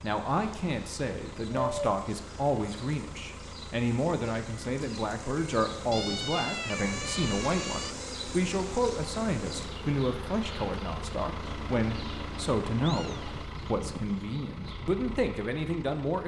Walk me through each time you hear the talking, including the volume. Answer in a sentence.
You can hear the talking from 0.0 to 16.2 s, at a steady volume.